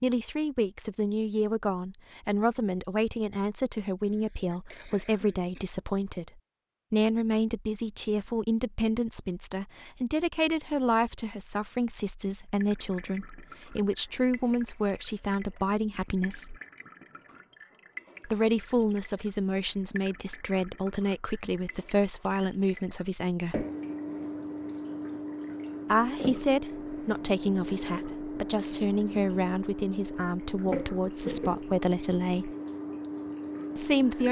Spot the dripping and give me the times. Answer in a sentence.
The dripping can be heard from 12.6 to 34.2 s.